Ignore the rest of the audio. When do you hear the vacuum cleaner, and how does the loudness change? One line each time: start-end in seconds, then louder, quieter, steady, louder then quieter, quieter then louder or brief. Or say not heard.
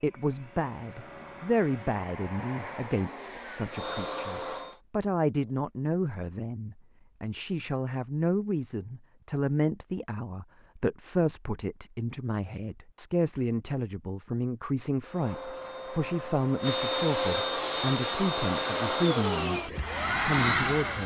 0.0-4.8 louder
15.0-21.0 louder.